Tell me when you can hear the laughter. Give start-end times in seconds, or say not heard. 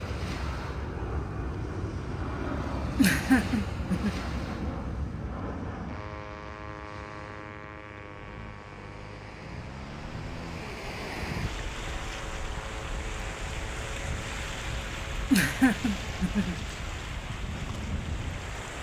3.0-4.2, 15.3-16.6.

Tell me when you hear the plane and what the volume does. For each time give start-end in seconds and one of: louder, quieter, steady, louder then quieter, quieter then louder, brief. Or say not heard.
0.0-16.6 quieter.